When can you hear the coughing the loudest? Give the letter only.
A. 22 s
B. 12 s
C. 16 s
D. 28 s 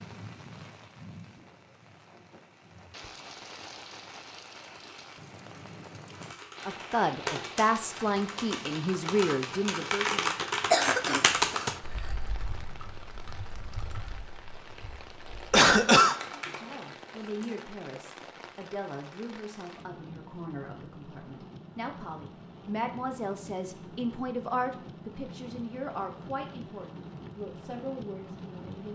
C.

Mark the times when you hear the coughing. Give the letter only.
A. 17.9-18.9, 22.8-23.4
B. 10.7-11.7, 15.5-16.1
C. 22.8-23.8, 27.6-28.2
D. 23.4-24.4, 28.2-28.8
B.